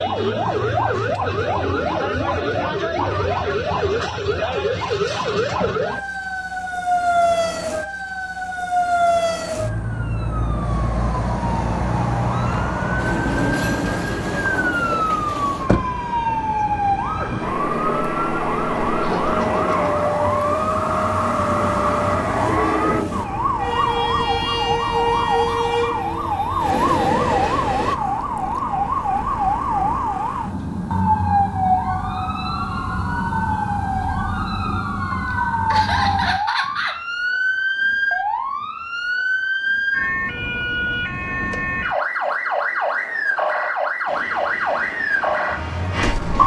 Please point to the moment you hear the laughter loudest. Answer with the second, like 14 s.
36 s.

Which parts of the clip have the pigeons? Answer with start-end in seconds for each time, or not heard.
not heard.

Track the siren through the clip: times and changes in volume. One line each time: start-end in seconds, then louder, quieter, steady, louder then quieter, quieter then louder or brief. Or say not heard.
0.0-46.4 steady.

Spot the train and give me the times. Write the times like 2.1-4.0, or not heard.
12.9-27.9, 44.0-46.4.